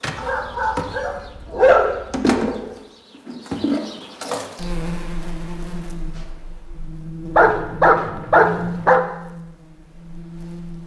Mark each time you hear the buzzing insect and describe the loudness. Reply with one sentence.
You can hear the buzzing insect from 0.0 to 10.8 s, getting quieter.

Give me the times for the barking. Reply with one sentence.
The barking can be heard from 0.1 to 2.7 s and from 7.3 to 9.0 s.